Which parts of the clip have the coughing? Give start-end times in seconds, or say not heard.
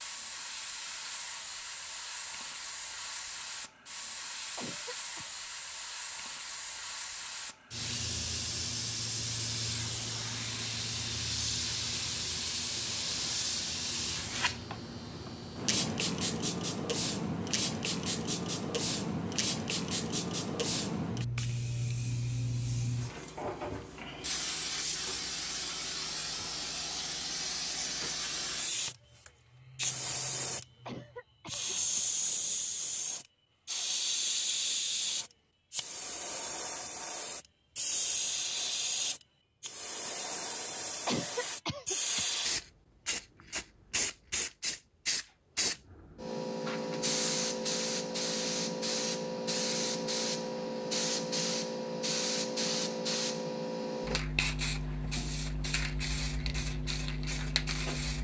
4.5-5.3, 30.9-32.0, 41.0-42.2.